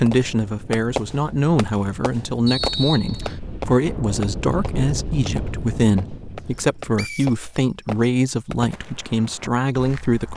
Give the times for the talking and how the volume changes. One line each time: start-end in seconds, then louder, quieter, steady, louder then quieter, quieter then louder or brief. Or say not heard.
0.0-10.3 steady.